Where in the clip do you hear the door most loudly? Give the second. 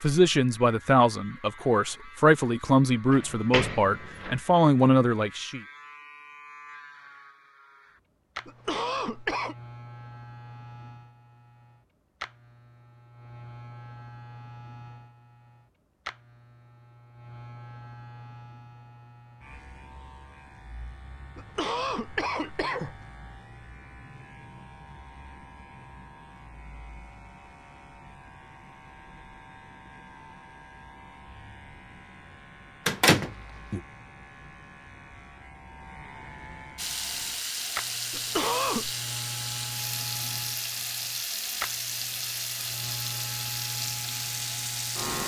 33 s.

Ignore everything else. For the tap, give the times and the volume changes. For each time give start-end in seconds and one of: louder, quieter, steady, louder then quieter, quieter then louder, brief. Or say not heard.
36.8-45.2 steady.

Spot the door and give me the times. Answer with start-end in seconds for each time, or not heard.
3.1-4.4, 32.9-33.8.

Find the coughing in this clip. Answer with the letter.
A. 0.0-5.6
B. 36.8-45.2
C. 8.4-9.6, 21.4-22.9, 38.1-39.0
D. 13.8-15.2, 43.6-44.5
C.